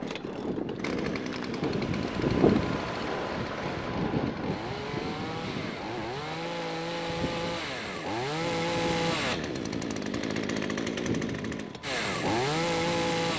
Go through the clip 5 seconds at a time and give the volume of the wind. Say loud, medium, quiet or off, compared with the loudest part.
loud, medium, medium.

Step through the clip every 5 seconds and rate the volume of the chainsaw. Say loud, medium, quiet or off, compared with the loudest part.
medium, loud, loud.